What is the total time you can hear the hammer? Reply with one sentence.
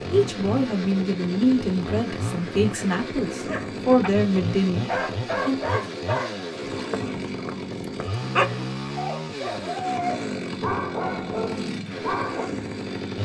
The hammer can't be heard in this clip.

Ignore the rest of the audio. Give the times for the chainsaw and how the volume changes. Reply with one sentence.
The chainsaw can be heard from 0.0 to 13.2 s, at a steady volume.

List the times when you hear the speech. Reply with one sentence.
You can hear the speech from 0.1 to 5.8 s.